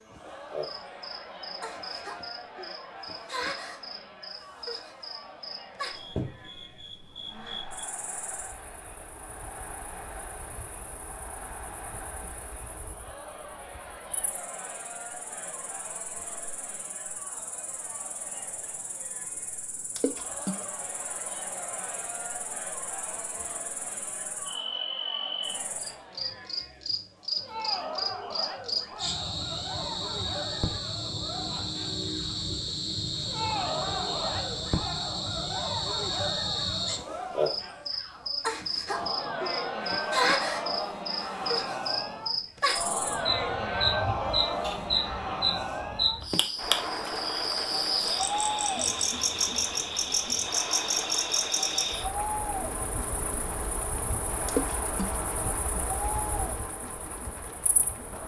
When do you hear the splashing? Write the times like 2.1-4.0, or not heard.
19.9-20.6, 54.5-55.1.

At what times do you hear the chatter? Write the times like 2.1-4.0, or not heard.
0.1-58.2.